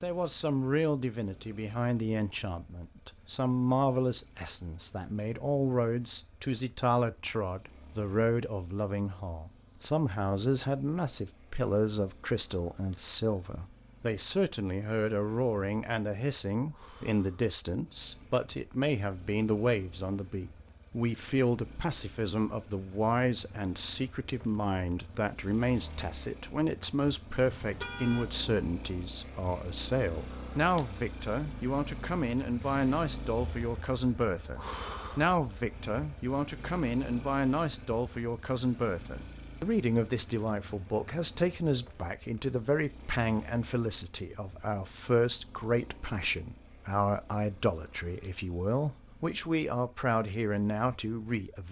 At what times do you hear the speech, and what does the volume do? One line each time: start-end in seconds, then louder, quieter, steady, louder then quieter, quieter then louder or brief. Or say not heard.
0.0-51.6 steady.